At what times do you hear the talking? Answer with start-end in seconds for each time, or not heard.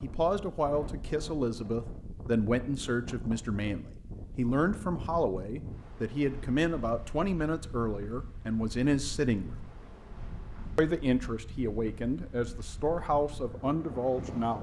0.0-9.6, 10.8-14.5.